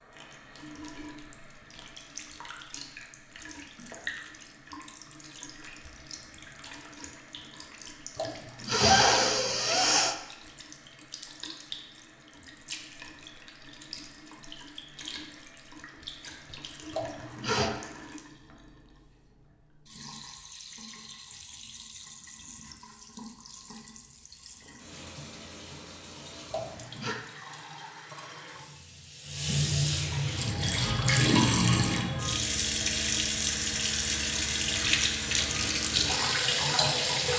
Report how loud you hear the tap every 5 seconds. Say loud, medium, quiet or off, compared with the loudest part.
quiet, quiet, quiet, quiet, quiet, medium, loud, loud.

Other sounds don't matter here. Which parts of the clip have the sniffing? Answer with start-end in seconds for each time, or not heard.
8.2-10.2, 16.9-17.7, 26.5-27.2.